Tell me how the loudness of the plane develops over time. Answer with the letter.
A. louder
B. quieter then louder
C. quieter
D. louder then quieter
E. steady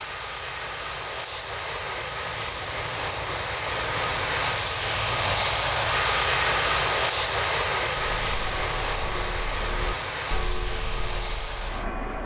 D.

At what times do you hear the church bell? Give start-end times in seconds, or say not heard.
8.2-12.2.